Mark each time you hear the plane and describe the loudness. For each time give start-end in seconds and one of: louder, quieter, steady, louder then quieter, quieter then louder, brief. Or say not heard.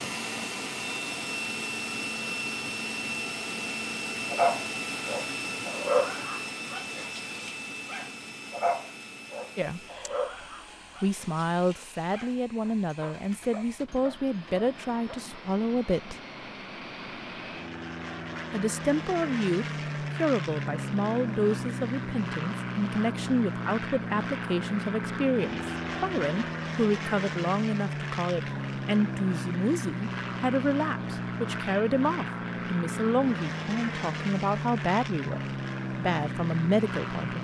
0.0-37.4 quieter then louder.